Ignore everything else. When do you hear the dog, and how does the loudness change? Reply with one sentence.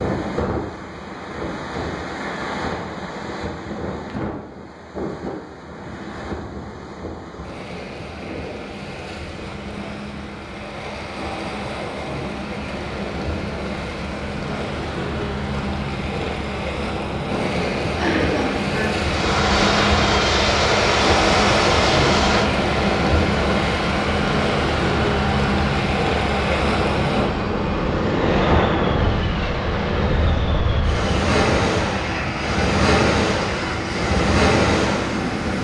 The dog can't be heard in this clip.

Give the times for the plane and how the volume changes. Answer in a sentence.
You can hear the plane from 18.9 to 35.5 s, getting quieter.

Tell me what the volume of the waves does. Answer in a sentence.
The volume of the waves goes up.